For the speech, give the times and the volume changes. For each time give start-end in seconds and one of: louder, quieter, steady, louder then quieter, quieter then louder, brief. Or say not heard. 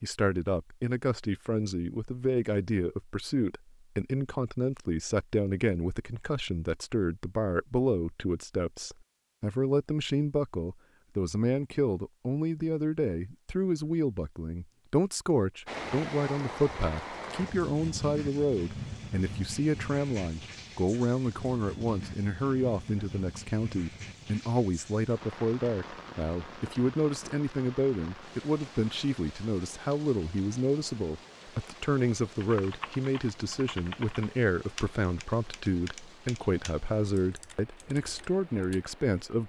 0.0-39.4 steady.